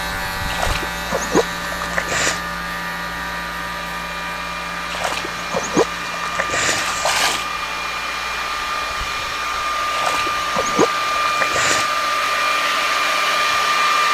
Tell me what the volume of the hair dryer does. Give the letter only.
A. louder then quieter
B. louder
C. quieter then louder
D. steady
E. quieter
B.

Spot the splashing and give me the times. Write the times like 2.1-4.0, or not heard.
0.5-2.4, 4.9-7.5, 9.9-11.9.